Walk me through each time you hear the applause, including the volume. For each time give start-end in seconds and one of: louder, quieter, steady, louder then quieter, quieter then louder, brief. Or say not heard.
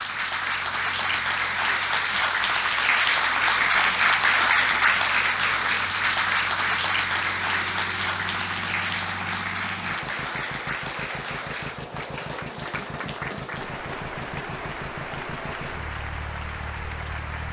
0.0-17.4 quieter.